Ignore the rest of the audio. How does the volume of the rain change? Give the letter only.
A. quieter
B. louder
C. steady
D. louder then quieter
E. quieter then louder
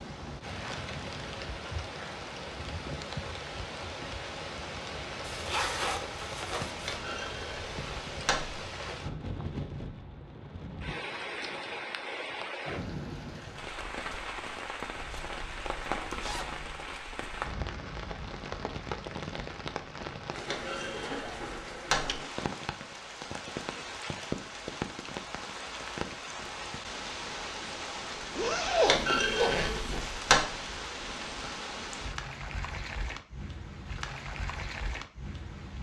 C.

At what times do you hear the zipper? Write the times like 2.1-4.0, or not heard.
5.2-6.8, 14.9-16.8, 28.4-29.8.